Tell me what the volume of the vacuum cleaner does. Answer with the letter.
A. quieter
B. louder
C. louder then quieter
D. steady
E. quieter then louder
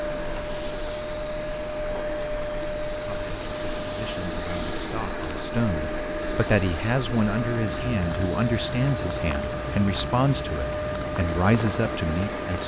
D.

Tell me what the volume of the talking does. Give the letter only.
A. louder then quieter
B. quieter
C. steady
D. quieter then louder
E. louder
E.